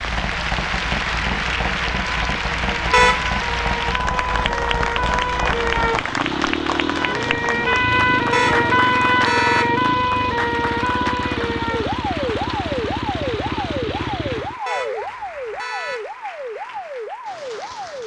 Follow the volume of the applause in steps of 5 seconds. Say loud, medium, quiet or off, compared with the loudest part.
loud, loud, medium, quiet.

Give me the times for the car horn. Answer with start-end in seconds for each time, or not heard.
2.9-3.4, 8.3-9.7, 14.7-16.1.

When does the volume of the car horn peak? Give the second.
3 s.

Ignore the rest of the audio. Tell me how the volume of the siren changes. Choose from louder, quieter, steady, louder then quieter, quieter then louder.
louder then quieter.